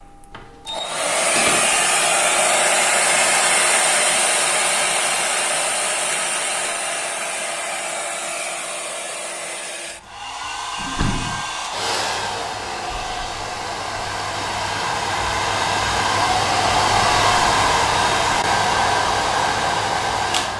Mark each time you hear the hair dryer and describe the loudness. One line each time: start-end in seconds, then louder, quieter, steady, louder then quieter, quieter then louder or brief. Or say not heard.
0.2-20.5 quieter then louder.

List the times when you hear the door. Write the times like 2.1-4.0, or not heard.
0.3-1.6, 10.8-11.4.